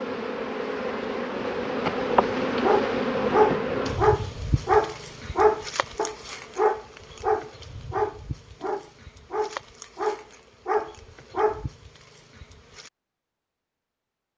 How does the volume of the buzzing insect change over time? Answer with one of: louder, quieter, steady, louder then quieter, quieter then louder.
quieter.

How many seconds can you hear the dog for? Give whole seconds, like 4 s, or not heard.
9 s.